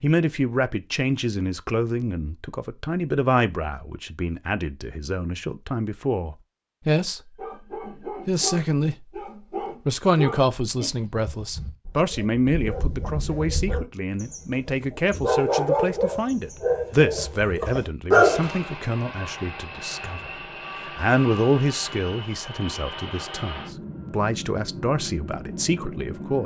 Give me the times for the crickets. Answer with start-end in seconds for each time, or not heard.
not heard.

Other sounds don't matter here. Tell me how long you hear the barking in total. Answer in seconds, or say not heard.
11 s.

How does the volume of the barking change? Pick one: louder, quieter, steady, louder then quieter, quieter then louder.
louder.